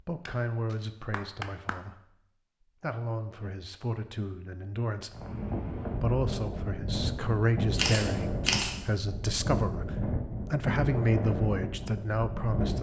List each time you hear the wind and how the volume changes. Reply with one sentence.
You can hear the wind from 5.1 to 12.7 s, at a steady volume.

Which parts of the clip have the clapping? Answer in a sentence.
You can hear the clapping from 0.2 to 1.8 s.